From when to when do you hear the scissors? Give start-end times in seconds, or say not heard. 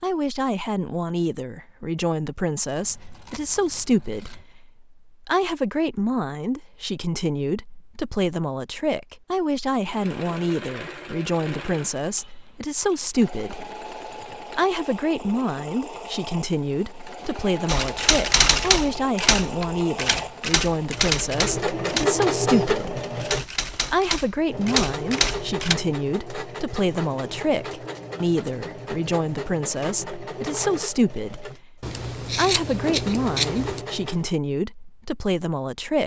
2.8-4.5, 31.8-33.9.